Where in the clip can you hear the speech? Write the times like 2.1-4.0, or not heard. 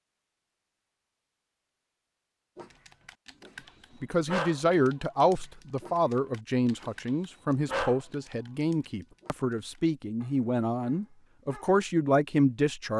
4.0-12.9.